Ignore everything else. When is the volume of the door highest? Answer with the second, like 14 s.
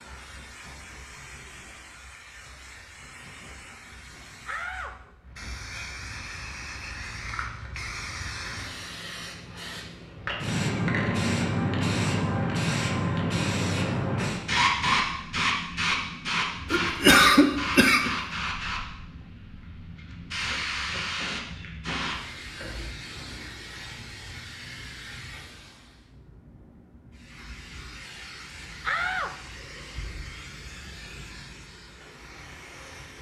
29 s.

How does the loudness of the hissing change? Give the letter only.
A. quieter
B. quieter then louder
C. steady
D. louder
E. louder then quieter
E.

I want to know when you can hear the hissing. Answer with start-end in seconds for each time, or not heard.
0.0-33.1.